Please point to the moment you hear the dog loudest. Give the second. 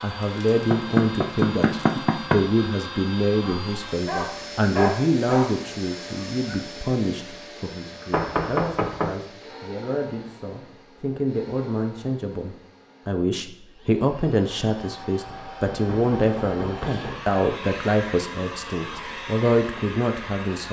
5 s.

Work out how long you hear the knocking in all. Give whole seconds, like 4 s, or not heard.
5 s.